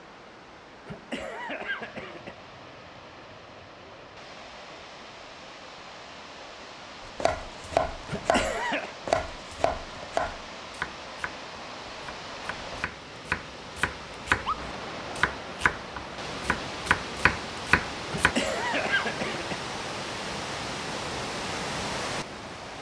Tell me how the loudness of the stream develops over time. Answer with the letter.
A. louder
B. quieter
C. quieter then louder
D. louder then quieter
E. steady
A.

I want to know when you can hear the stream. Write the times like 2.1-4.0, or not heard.
0.0-22.7.